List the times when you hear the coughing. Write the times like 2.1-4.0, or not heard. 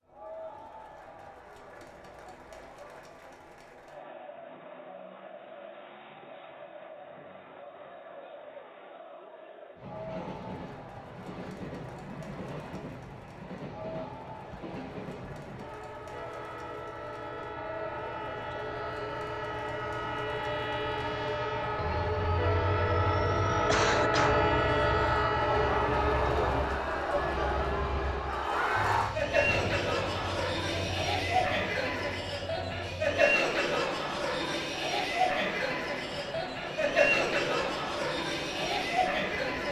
23.6-24.5.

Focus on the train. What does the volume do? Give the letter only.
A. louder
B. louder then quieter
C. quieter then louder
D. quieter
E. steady
B.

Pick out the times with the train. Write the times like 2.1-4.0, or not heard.
9.8-39.6.